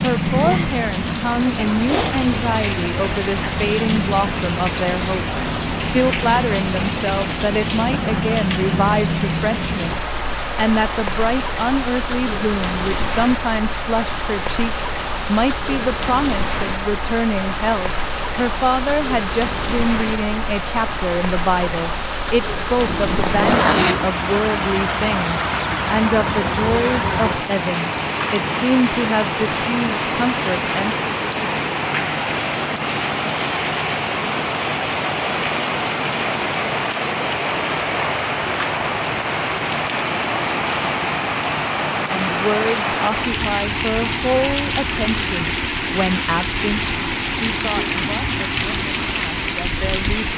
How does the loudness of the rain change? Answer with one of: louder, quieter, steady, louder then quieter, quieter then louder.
steady.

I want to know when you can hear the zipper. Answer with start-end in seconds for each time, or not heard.
22.9-24.1.